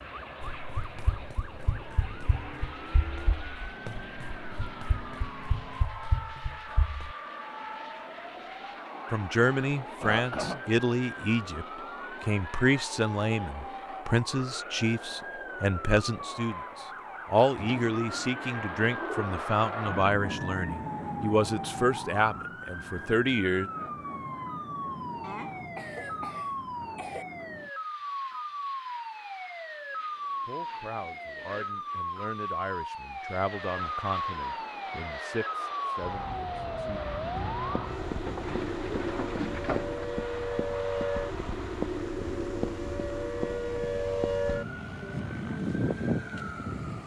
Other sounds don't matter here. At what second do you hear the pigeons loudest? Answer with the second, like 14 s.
40 s.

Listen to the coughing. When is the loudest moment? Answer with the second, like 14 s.
10 s.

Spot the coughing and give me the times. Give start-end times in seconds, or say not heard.
9.8-10.7, 25.2-27.2.